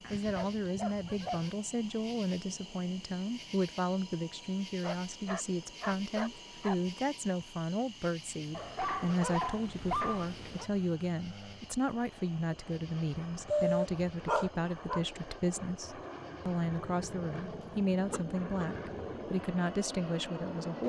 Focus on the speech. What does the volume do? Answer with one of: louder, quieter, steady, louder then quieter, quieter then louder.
steady.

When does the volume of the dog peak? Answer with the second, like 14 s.
14 s.